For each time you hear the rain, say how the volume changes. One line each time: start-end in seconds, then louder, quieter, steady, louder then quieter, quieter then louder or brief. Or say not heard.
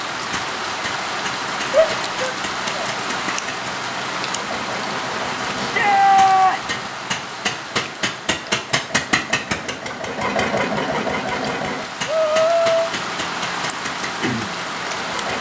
0.0-15.3 quieter then louder.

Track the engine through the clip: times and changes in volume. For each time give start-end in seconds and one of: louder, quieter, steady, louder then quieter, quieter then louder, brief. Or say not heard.
0.1-15.3 louder then quieter.